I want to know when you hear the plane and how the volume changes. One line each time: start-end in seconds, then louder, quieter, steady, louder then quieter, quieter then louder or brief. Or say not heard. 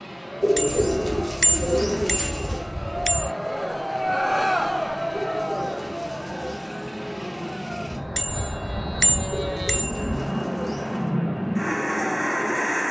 0.0-12.8 louder.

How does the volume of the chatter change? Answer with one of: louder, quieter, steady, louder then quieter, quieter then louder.
louder then quieter.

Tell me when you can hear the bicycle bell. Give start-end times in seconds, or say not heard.
0.6-3.3, 8.2-10.2.